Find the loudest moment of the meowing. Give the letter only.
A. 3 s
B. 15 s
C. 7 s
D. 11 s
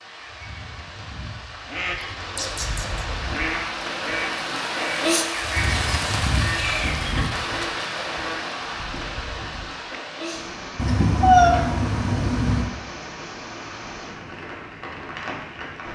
D.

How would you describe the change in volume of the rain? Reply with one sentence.
The loudness of the rain goes up, then down.